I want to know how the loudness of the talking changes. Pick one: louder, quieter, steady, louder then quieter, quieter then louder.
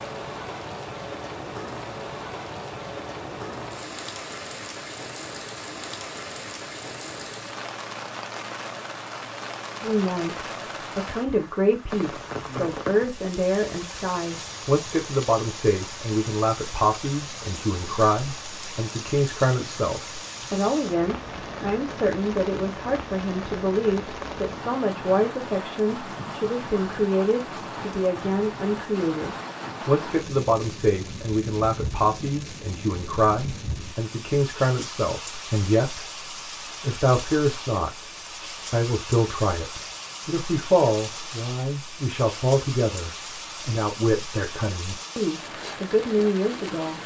steady.